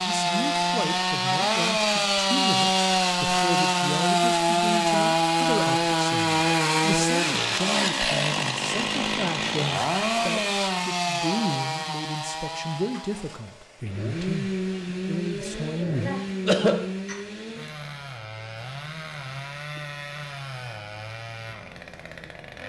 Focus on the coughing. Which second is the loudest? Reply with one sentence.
The loudest moment of the coughing is at 17 seconds.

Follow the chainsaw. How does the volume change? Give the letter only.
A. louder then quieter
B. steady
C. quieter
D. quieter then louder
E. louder
C.